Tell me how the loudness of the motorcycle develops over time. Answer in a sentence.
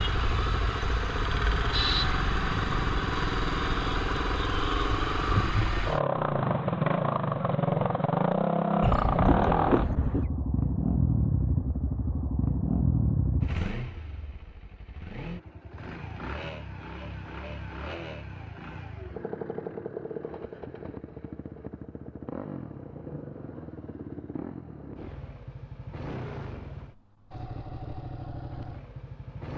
The loudness of the motorcycle goes down.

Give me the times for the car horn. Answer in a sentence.
You can hear the car horn from 8.8 to 10.2 s.